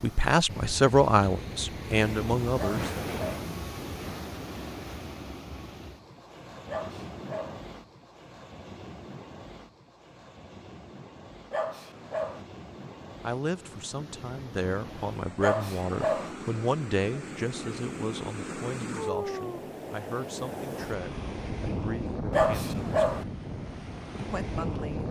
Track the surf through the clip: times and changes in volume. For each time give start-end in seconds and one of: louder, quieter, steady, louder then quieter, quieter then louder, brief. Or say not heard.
0.0-25.0 quieter then louder.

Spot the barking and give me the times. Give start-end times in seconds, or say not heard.
2.5-3.5, 6.7-7.6, 11.5-12.4, 15.4-16.4, 22.3-23.2.